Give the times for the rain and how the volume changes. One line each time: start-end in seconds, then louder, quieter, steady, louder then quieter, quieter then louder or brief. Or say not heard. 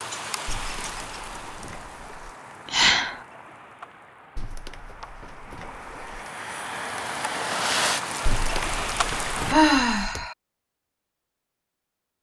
0.0-9.6 quieter then louder.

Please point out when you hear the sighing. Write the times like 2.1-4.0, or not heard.
2.6-3.2, 9.5-10.3.